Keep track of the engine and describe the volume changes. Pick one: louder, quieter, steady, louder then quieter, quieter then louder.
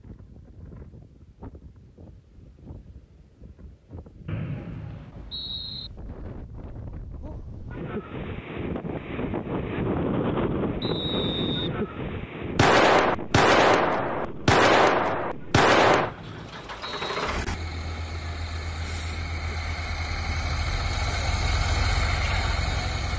quieter then louder.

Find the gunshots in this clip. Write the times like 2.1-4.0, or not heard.
12.6-16.1.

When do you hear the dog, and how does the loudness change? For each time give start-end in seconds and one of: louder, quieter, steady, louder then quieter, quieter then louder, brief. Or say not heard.
not heard.